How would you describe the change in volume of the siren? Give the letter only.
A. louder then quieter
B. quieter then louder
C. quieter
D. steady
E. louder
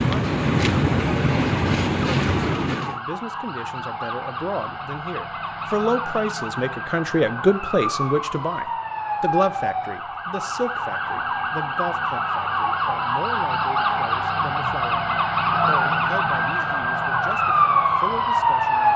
E.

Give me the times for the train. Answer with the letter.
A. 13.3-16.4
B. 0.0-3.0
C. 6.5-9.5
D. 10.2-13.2
B.